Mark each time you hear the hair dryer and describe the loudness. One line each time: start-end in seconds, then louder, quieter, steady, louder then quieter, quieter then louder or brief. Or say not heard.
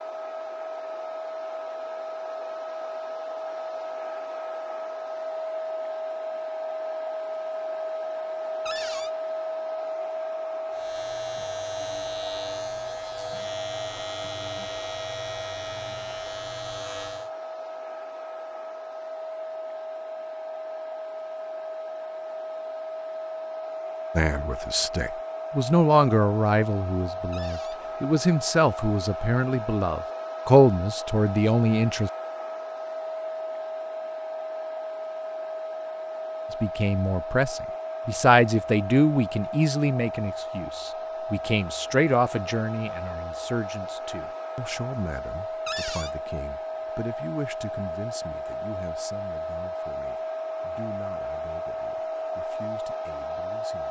0.0-53.8 steady.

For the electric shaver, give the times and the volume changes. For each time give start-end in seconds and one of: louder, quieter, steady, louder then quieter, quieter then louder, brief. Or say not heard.
10.7-17.3 steady.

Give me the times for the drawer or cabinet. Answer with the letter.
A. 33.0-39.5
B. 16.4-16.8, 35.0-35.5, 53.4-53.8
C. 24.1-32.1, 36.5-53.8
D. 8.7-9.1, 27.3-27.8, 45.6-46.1
D.